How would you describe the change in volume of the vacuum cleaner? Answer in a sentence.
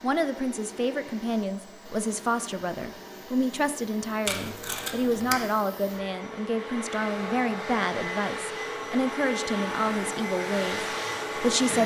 The loudness of the vacuum cleaner goes up.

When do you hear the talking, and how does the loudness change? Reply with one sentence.
The talking can be heard from 0.0 to 11.8 s, at a steady volume.